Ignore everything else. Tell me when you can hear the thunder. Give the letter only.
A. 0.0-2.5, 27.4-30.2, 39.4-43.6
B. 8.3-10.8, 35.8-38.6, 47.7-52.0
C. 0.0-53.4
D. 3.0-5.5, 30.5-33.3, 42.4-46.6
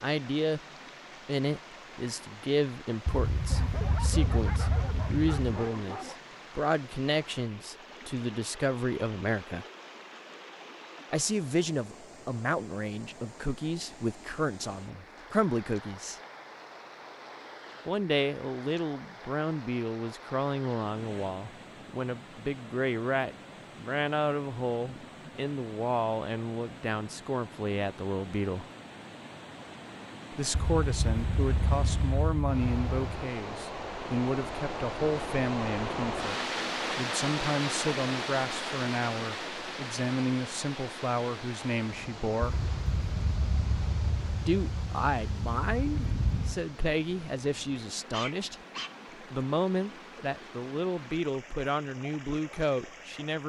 D.